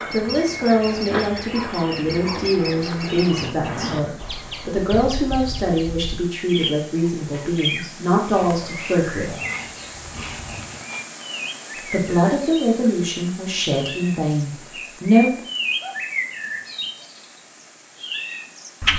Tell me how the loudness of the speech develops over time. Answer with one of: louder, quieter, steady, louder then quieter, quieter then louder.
steady.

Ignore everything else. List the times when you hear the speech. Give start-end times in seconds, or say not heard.
0.1-9.3, 11.8-15.4.